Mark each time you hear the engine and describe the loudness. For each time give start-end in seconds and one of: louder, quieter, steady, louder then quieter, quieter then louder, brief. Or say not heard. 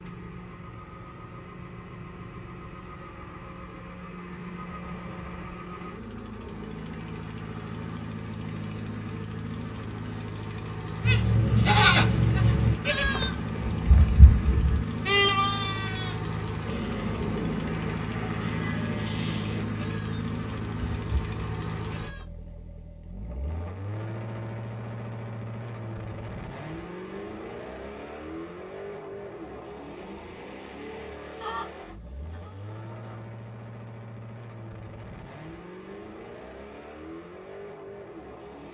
0.0-38.7 louder then quieter.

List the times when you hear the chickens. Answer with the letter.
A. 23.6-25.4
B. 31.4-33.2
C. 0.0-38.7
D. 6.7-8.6
B.